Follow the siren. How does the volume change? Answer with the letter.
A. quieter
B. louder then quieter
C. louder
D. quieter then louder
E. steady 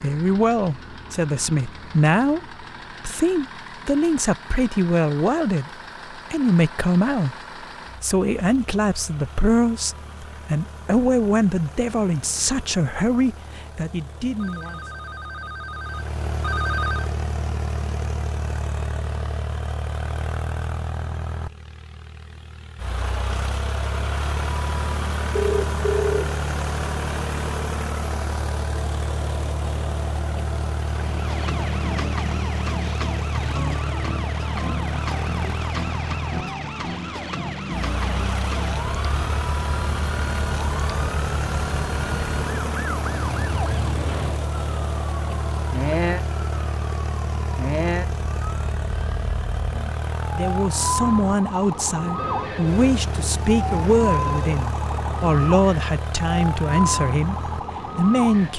E.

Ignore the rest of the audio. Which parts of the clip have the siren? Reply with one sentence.
You can hear the siren from 30.9 to 58.5 s.